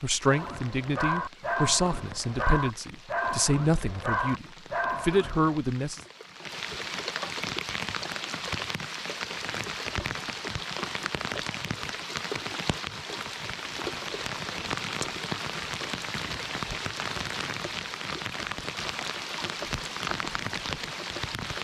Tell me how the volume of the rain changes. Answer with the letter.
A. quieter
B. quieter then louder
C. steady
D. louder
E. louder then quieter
D.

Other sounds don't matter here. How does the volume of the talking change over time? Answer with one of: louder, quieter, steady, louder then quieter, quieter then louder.
louder.